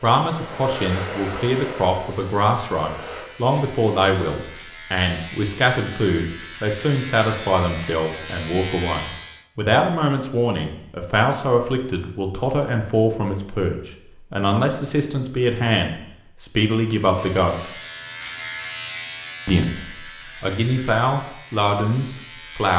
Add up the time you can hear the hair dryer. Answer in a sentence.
The hair dryer can be heard for 3 seconds in total.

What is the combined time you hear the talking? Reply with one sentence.
You can hear the talking for 21 seconds altogether.